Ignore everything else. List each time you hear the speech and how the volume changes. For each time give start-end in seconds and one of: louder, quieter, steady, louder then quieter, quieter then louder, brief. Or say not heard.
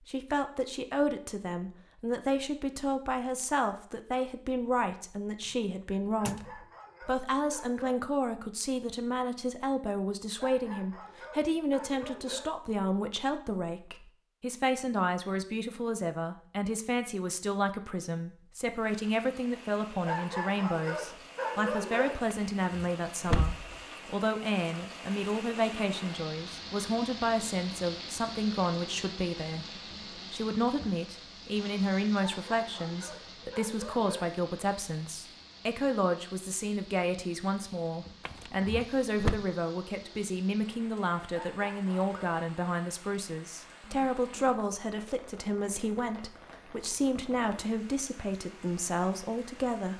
0.0-49.9 steady.